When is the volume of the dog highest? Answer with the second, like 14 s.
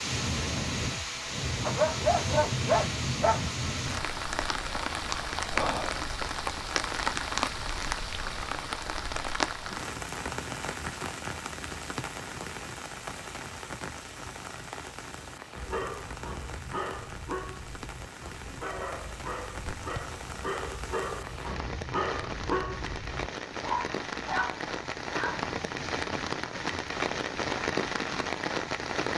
2 s.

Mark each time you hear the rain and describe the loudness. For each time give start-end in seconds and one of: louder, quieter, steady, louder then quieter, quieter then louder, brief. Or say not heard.
0.0-29.1 quieter then louder.